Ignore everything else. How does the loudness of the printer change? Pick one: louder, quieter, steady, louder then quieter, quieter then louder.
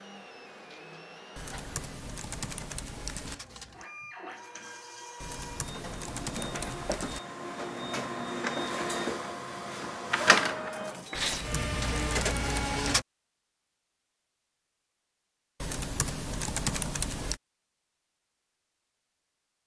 louder.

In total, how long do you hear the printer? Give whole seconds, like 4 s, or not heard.
13 s.